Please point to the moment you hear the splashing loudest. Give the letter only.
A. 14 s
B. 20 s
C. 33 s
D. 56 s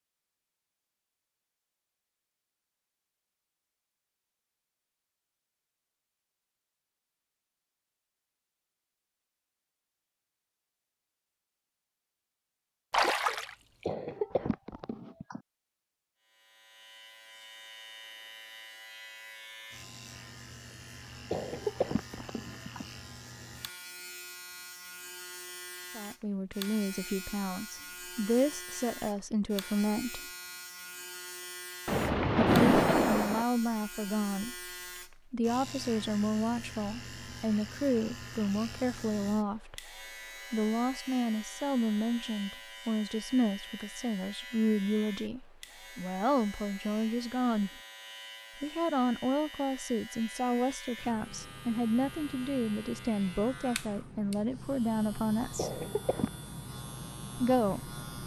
C.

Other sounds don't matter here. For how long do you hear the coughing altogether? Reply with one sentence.
The coughing can be heard for 4 seconds in total.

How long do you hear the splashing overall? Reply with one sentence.
The splashing can be heard for 2 seconds in total.